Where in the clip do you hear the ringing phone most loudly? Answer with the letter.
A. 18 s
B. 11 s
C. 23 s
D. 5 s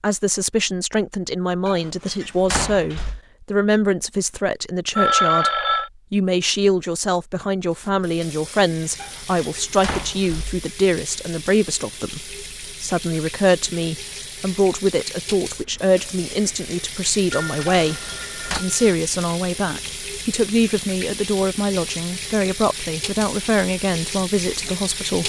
D.